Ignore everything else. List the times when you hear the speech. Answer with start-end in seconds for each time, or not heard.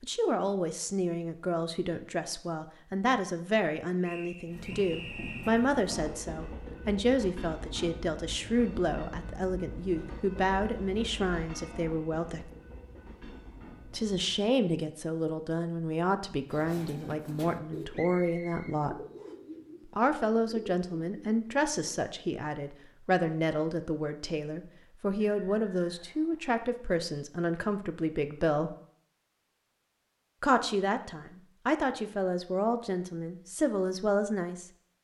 0.0-12.5, 13.8-19.0, 19.9-28.8, 30.4-34.7.